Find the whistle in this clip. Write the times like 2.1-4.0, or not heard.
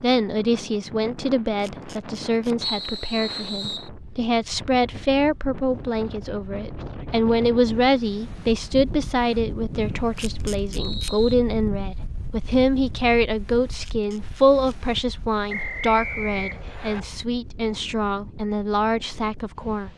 2.6-3.9, 9.8-11.3, 15.4-17.0.